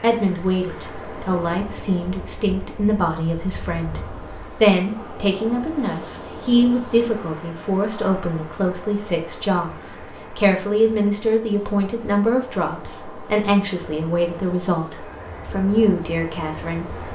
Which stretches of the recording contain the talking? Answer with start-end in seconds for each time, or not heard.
0.0-16.9.